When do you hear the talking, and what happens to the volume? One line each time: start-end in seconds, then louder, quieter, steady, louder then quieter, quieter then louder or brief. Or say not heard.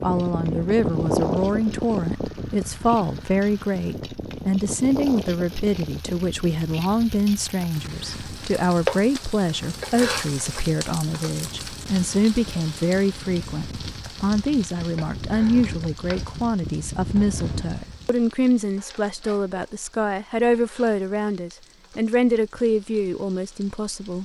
0.0-24.2 steady.